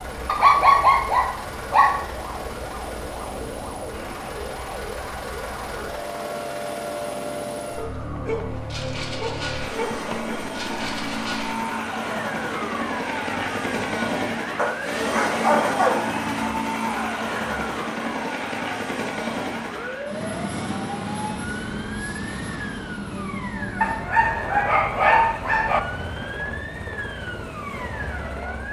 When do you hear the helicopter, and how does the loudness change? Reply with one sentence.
The helicopter can be heard from 0.0 to 28.6 s, getting louder then quieter.